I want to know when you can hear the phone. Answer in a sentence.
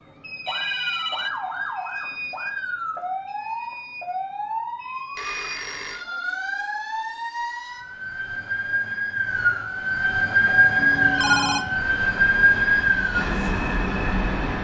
The phone can be heard from 0.5 to 1.4 s, from 5.2 to 6.0 s and from 10.8 to 11.7 s.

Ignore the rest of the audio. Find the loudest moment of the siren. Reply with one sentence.
The volume of the siren peaks at 11 seconds.